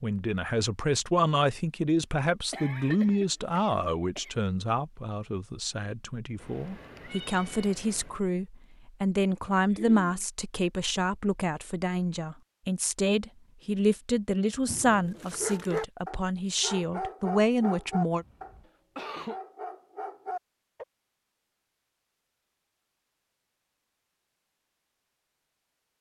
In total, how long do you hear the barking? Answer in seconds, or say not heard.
6 s.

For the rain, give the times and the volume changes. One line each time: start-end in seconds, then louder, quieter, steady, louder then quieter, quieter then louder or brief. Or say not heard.
not heard.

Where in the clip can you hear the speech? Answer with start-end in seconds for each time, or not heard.
0.0-18.2.